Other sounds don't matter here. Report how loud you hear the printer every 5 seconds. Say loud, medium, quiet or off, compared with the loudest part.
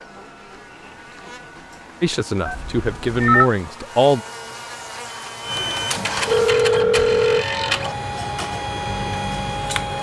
quiet, loud.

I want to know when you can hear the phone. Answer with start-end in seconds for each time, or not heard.
2.5-3.5, 6.2-7.5.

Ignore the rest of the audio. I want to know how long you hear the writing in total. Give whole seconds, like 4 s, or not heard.
not heard.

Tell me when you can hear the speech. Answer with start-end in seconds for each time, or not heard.
2.0-4.2.